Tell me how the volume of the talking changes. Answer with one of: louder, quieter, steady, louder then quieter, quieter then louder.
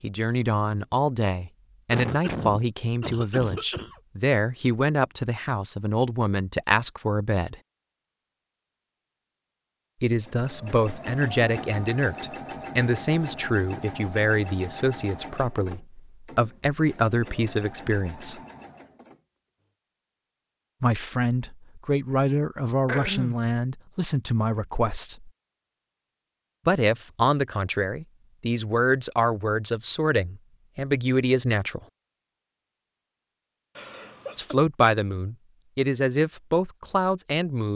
steady.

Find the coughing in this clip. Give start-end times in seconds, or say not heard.
1.9-4.0, 22.9-23.5, 33.8-34.5.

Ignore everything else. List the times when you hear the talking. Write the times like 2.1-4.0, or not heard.
0.0-7.5, 10.0-18.4, 20.8-25.3, 26.6-31.8, 34.4-37.7.